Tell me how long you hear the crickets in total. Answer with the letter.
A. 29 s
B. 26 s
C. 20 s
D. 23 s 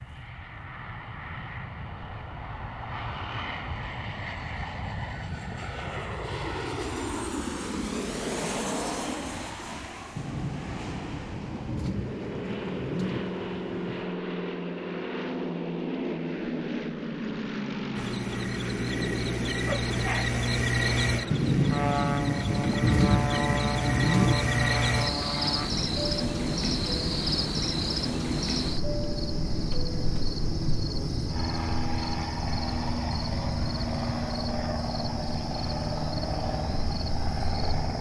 C.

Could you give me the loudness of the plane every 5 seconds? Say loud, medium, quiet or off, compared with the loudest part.
medium, loud, loud, loud, loud, loud, loud, loud.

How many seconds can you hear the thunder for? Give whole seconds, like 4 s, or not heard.
7 s.